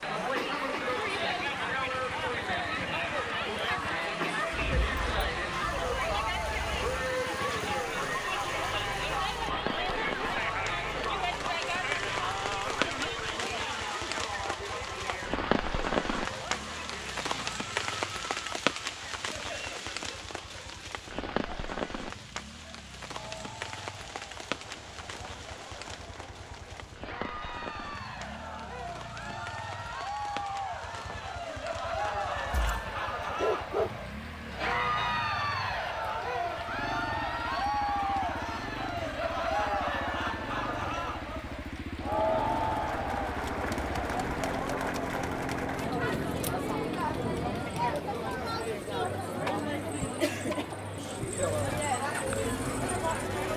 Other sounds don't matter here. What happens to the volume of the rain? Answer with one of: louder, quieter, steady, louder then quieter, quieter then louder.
louder then quieter.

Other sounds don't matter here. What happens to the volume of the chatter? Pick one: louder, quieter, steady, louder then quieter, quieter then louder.
quieter then louder.